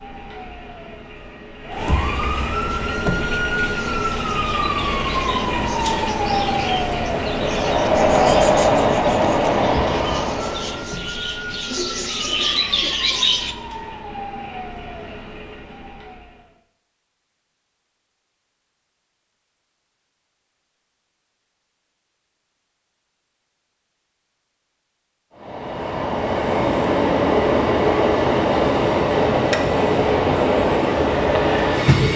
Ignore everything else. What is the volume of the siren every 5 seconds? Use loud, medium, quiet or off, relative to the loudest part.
loud, loud, medium, quiet, off, off, off.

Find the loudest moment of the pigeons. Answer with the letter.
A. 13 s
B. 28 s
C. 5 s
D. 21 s
A.